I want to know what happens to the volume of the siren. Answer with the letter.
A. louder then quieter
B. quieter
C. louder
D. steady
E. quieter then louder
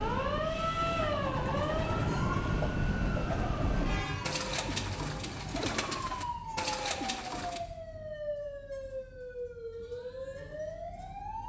B.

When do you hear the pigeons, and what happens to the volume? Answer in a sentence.
The pigeons can be heard from 0.8 to 7.6 s, at a steady volume.